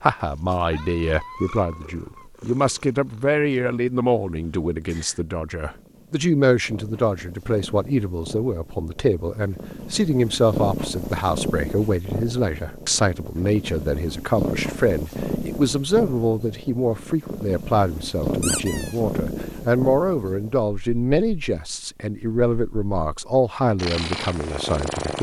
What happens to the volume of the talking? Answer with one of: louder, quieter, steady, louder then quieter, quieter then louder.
steady.